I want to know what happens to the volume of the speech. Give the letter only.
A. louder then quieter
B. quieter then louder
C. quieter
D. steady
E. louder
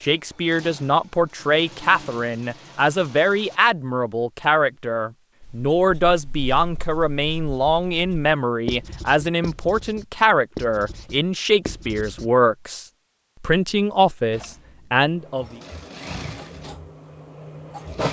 D.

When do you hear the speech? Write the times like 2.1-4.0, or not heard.
0.0-15.6.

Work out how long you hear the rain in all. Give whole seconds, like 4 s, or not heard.
not heard.